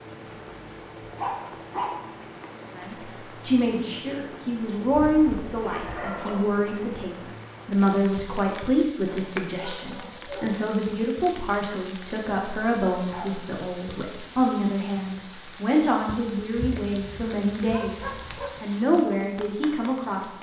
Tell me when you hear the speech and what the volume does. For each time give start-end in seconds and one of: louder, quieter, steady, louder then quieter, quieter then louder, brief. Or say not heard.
2.8-20.3 steady.